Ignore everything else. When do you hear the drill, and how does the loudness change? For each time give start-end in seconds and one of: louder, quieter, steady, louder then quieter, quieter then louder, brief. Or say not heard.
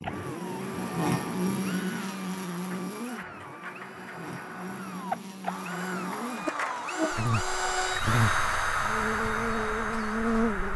0.0-10.7 louder.